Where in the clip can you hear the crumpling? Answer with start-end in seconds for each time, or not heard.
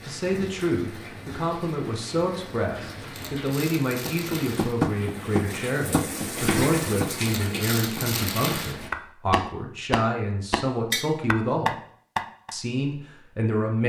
3.1-4.8, 7.2-8.8.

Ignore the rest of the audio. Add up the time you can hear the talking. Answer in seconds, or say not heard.
13 s.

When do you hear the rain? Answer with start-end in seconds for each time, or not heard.
0.0-8.9.